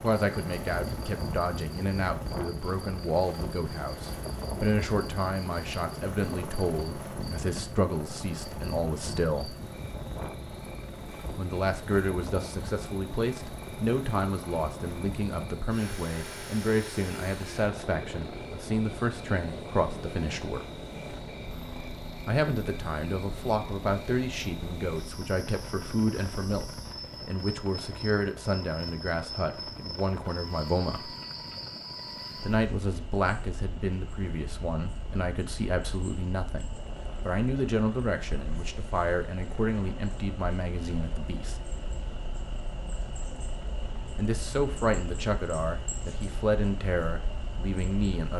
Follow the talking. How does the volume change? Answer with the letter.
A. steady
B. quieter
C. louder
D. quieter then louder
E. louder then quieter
A.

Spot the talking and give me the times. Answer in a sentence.
You can hear the talking from 0.0 to 9.6 s, from 11.3 to 20.6 s, from 22.2 to 31.1 s, from 32.5 to 41.6 s and from 44.1 to 48.3 s.